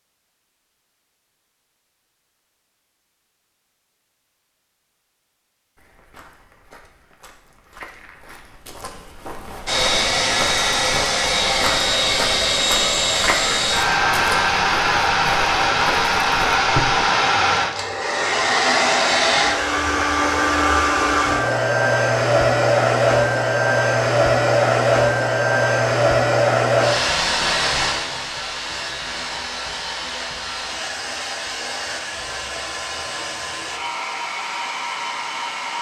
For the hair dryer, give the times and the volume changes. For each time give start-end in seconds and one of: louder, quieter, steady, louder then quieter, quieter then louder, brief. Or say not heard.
9.7-35.7 quieter.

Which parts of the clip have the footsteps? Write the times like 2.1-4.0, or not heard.
5.8-17.1.